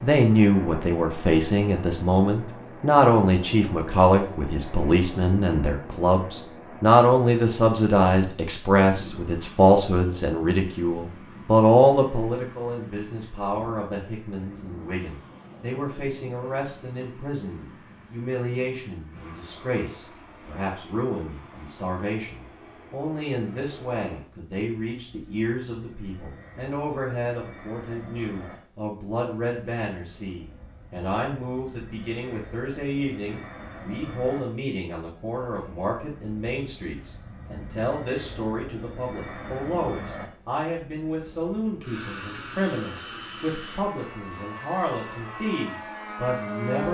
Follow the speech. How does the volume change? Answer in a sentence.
The loudness of the speech goes down.